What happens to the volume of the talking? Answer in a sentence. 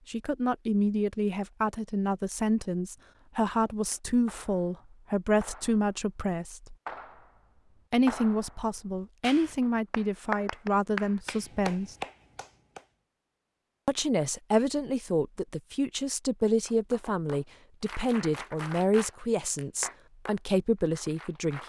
The volume of the talking stays about the same.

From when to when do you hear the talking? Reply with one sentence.
You can hear the talking from 0.1 to 6.8 s, from 7.9 to 11.9 s and from 13.8 to 21.6 s.